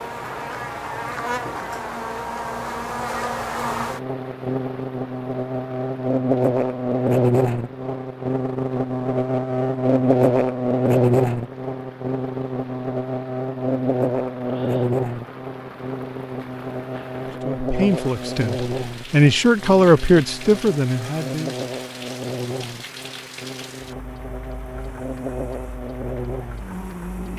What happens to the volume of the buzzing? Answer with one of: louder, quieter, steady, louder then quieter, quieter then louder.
louder then quieter.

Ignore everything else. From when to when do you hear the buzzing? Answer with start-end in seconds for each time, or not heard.
0.0-27.3.